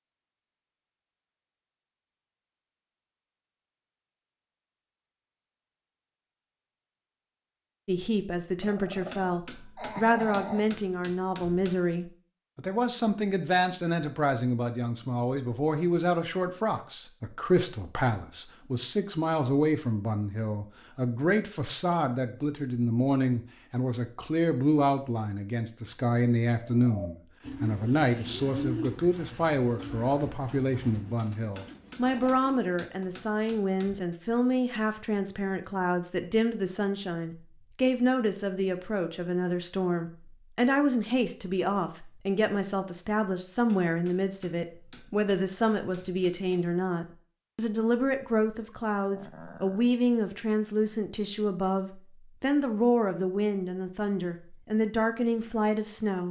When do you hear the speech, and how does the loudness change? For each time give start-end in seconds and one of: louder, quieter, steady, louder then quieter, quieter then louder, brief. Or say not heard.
7.8-56.2 steady.